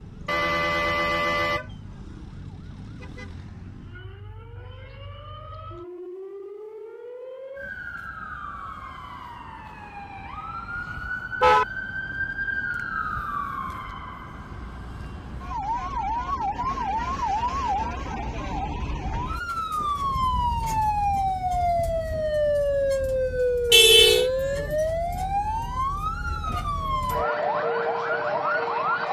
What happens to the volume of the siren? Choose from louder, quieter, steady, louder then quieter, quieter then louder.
louder.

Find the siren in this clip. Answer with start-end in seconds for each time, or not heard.
0.0-29.0.